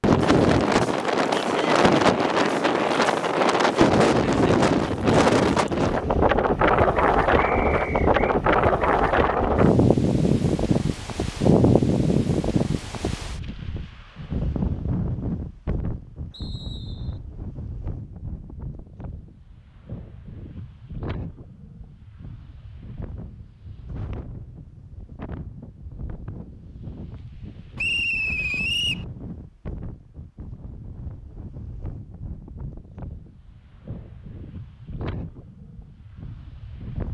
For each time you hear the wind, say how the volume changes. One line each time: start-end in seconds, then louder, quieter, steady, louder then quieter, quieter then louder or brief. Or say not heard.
0.0-37.0 quieter.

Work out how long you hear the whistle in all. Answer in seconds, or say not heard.
3 s.